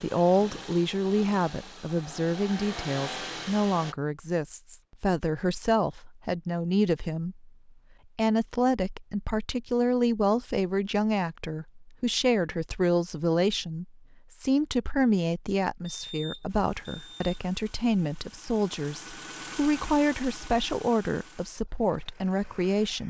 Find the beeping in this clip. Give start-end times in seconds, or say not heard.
15.9-17.4.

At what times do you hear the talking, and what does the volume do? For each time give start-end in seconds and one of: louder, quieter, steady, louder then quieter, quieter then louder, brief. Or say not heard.
0.0-7.5 steady
8.2-23.0 steady.